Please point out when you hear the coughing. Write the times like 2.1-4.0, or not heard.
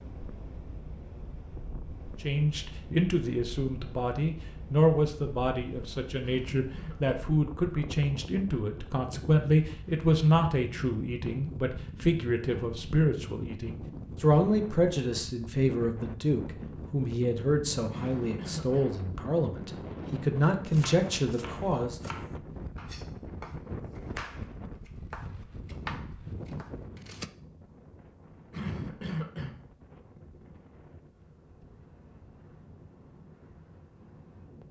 6.2-7.2, 17.9-18.9, 28.5-29.6.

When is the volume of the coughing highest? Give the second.
29 s.